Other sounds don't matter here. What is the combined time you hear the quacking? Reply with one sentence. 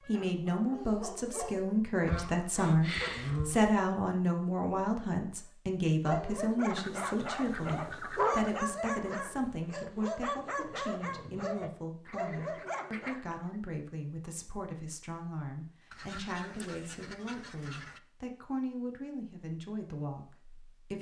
You can hear the quacking for 7 seconds altogether.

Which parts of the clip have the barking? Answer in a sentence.
You can hear the barking from 0.0 to 1.8 s and from 6.0 to 13.2 s.